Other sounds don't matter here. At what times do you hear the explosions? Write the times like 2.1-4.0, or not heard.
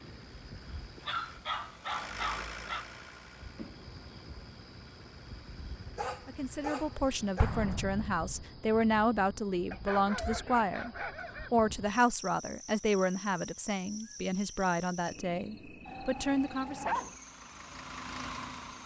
7.3-8.4.